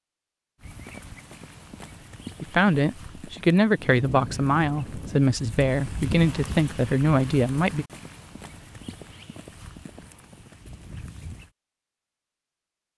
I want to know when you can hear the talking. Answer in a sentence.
You can hear the talking from 2.4 to 7.8 s.